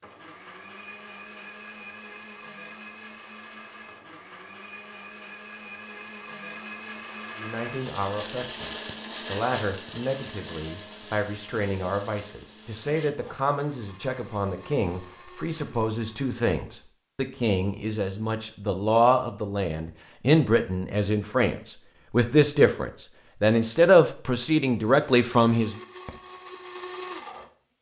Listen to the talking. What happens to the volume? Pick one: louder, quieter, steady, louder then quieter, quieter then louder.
louder.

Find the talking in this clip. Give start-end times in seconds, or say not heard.
7.3-25.8.